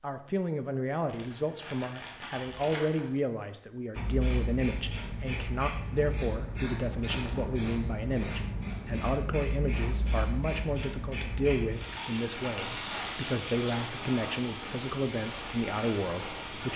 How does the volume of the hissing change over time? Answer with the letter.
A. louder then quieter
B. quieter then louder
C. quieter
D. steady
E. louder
D.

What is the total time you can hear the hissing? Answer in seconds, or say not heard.
13 s.